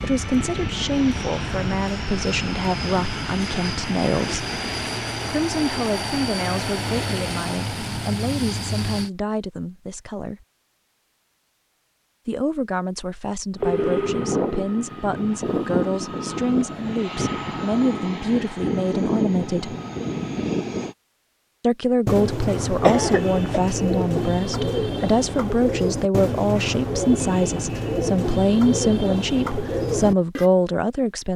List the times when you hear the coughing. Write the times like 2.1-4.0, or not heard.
22.8-23.6.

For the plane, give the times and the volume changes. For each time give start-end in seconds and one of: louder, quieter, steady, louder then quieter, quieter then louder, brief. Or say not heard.
0.0-9.1 steady
13.6-20.9 steady.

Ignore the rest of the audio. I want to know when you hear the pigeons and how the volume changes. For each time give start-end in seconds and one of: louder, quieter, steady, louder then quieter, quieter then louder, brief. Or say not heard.
22.1-30.5 steady.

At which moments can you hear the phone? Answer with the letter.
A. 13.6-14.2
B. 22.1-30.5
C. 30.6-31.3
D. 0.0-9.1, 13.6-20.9
A.